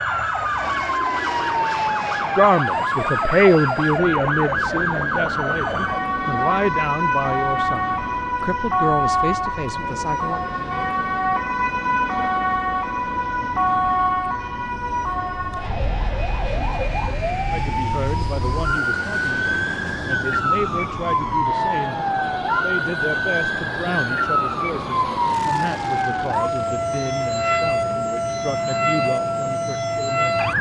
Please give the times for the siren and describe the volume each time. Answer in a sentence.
The siren can be heard from 0.0 to 30.5 s, at a steady volume.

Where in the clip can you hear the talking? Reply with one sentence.
You can hear the talking from 2.4 to 10.4 s, from 17.5 to 22.0 s and from 22.6 to 30.4 s.